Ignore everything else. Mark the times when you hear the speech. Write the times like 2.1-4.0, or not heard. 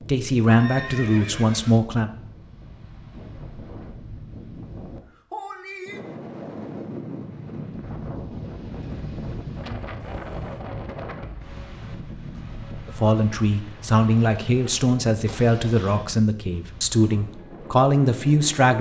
0.1-2.1, 12.8-18.7.